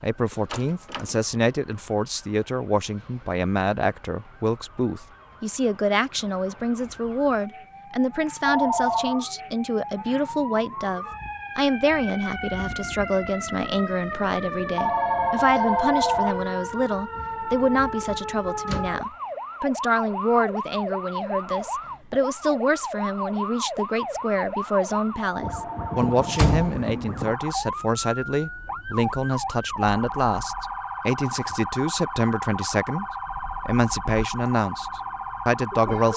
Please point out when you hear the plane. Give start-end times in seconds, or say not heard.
not heard.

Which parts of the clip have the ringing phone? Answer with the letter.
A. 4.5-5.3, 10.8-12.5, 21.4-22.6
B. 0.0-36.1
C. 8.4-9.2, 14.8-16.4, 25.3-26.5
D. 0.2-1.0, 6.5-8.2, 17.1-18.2
C.